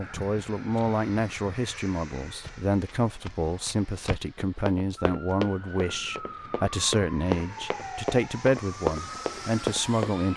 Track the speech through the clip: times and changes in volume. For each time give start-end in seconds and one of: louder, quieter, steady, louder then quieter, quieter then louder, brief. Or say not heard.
0.0-10.3 steady.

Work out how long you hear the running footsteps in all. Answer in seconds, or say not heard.
8 s.